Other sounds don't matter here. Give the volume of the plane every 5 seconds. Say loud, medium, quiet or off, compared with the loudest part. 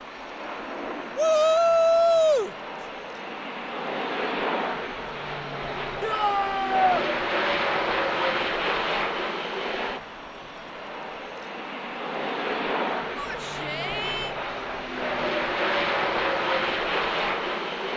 medium, loud, medium, loud.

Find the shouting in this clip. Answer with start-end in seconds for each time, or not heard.
1.1-2.5, 6.0-7.0, 13.2-14.3.